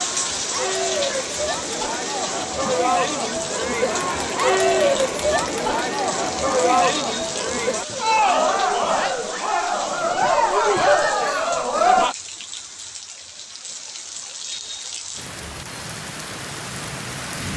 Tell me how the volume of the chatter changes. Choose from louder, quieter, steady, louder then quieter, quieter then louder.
louder.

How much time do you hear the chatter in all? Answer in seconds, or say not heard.
12 s.